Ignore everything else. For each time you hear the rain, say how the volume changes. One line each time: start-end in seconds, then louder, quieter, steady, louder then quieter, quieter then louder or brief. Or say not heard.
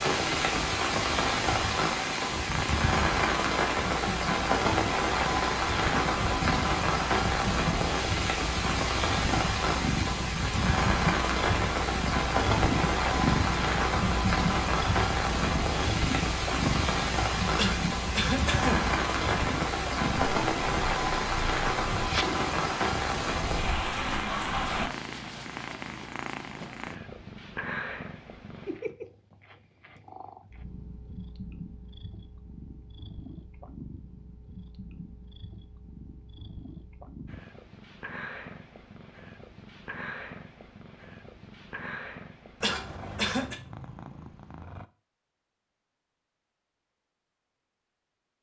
0.0-24.9 steady.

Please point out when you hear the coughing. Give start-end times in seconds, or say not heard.
17.6-18.9, 42.6-43.5.